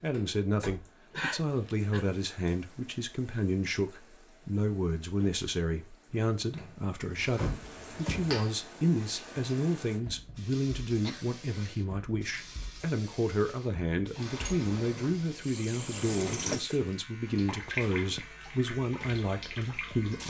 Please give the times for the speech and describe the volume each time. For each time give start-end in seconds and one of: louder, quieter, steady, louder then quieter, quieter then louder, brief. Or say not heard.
0.0-20.2 steady.